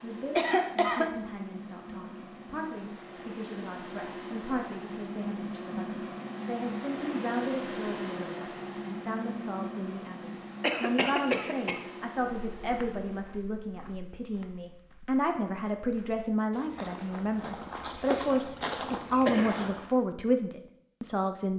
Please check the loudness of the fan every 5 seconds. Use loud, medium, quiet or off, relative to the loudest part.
medium, loud, medium, off, off.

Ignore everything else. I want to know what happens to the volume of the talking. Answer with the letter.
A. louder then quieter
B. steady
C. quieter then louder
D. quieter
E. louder
E.